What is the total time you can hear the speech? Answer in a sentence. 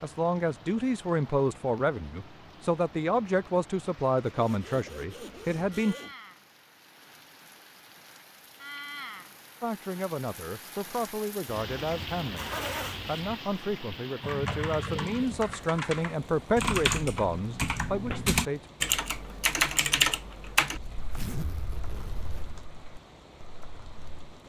You can hear the speech for 15 seconds altogether.